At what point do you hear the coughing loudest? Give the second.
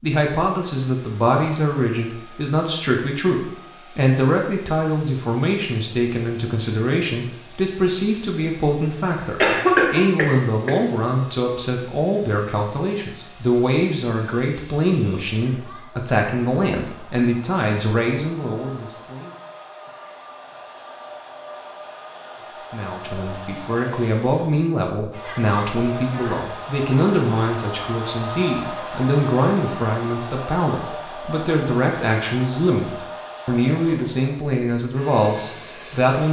10 s.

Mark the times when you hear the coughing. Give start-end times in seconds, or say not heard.
9.4-10.9.